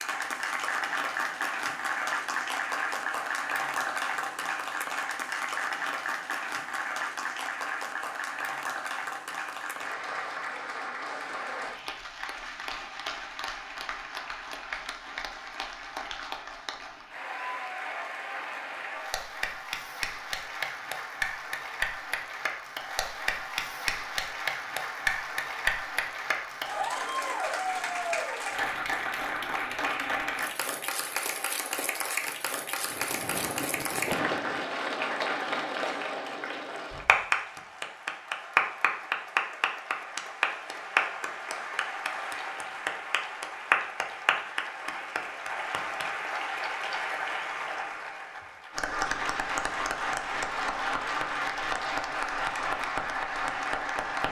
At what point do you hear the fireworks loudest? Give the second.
34 s.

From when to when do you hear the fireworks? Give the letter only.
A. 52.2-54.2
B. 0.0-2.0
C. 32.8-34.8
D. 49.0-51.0
C.